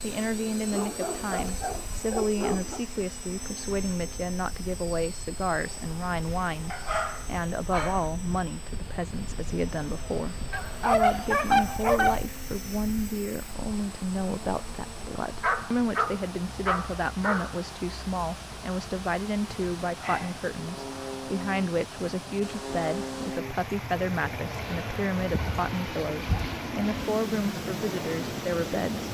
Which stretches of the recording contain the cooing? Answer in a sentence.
You can't hear the cooing here.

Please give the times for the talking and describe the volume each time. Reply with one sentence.
You can hear the talking from 0.0 to 29.0 s, at a steady volume.